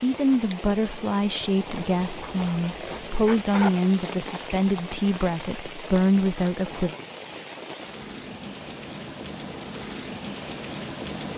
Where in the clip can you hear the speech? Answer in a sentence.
The speech can be heard from 0.0 to 7.0 s.